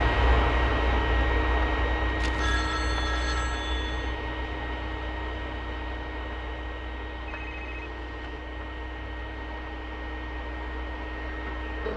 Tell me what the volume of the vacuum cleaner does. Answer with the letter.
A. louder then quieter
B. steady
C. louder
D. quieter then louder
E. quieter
E.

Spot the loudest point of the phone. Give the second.
3 s.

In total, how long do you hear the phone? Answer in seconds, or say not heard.
3 s.